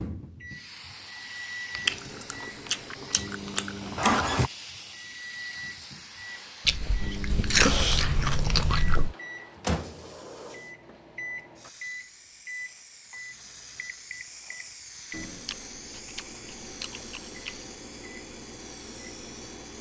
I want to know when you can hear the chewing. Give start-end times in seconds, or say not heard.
1.9-4.5, 6.7-9.2, 15.4-17.7.